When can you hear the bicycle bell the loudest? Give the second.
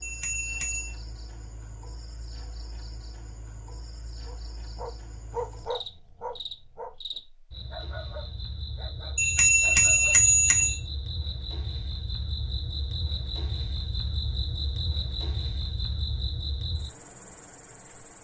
10 s.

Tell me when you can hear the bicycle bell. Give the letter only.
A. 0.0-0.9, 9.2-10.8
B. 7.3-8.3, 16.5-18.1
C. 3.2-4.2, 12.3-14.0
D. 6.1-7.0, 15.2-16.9
A.